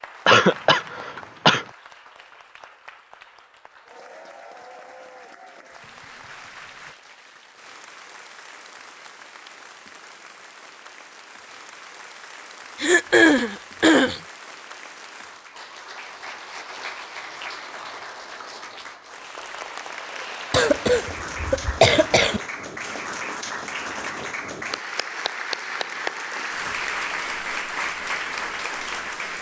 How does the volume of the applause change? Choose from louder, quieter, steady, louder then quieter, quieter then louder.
louder.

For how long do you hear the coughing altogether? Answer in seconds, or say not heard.
5 s.